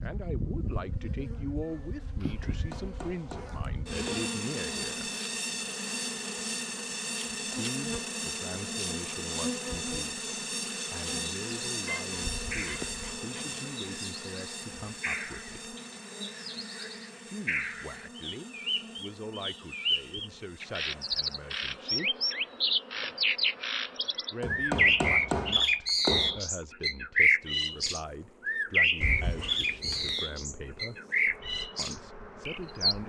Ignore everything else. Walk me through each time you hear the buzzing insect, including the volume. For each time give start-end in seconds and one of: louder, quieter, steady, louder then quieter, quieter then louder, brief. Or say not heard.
0.0-33.0 quieter.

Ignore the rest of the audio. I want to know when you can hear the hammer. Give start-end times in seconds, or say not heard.
2.4-4.3, 24.4-26.4.